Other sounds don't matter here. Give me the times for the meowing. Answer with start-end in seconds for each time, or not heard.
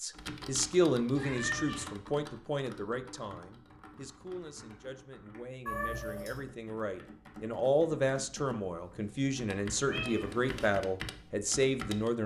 1.1-1.9, 5.7-6.4, 9.8-10.8.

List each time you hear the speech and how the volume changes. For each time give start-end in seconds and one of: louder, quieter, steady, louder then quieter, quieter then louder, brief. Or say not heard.
0.0-12.2 quieter then louder.